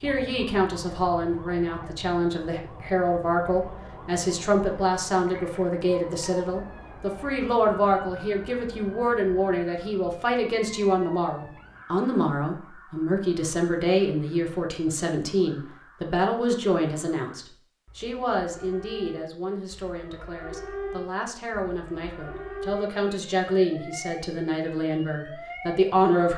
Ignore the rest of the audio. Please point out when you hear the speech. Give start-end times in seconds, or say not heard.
0.0-26.3.